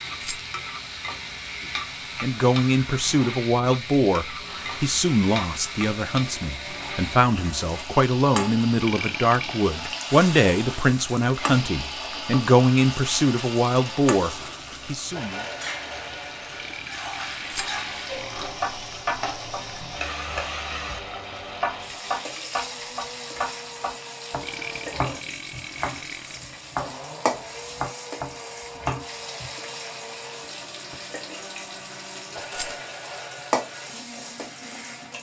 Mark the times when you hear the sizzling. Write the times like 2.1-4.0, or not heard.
0.0-35.1.